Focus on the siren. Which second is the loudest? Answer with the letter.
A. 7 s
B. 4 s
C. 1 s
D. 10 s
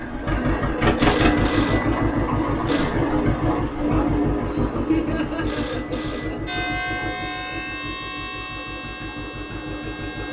A.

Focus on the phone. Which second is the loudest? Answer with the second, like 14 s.
1 s.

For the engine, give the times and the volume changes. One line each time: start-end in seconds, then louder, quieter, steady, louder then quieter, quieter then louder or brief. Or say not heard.
0.0-10.2 quieter.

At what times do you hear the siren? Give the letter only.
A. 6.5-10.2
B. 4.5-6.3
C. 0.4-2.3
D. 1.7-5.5
A.